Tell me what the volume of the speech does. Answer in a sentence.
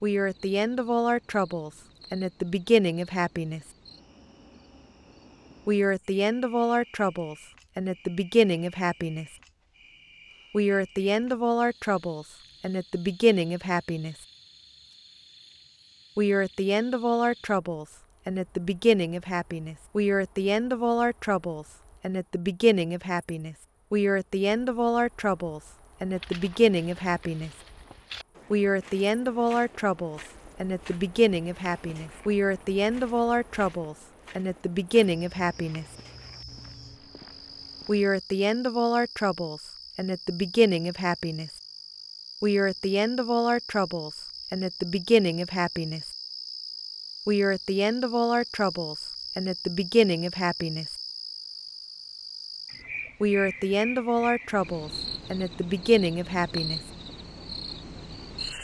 The loudness of the speech stays about the same.